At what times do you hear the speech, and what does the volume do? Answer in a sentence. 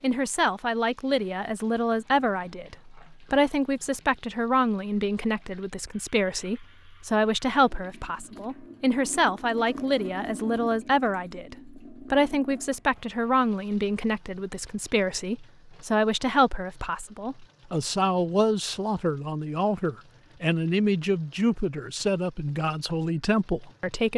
The speech can be heard from 0.0 to 24.1 s, at a steady volume.